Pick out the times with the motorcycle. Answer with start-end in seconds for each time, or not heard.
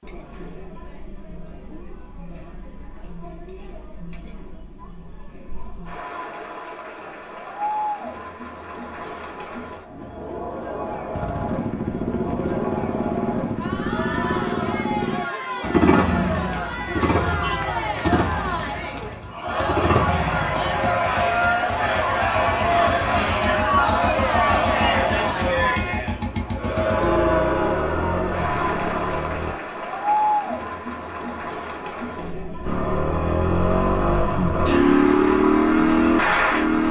11.1-29.6, 32.6-36.8.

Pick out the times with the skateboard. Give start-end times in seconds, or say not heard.
not heard.